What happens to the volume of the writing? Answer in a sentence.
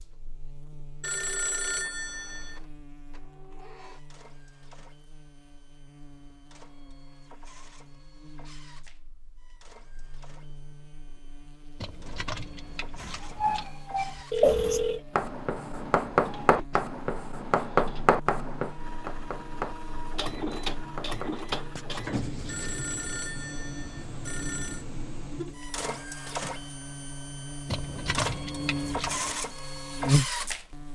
The loudness of the writing goes down.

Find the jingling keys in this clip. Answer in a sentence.
The jingling keys can be heard from 11.8 to 13.7 s and from 27.6 to 29.3 s.